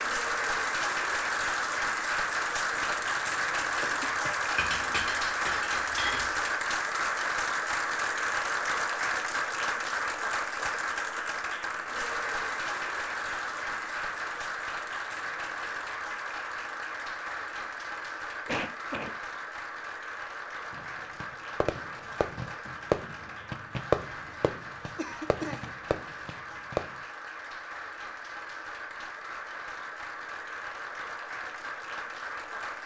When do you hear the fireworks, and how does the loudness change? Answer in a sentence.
The fireworks can be heard from 20.7 to 27.0 s, getting louder then quieter.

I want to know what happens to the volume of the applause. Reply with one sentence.
The loudness of the applause goes down.